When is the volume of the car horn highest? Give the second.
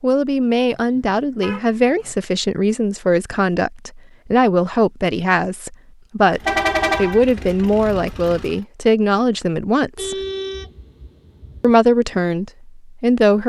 7 s.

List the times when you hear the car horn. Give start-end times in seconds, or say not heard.
0.7-2.1, 6.2-7.2, 9.9-11.8.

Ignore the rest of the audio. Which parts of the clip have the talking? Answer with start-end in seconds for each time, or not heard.
0.0-10.2, 11.6-13.4.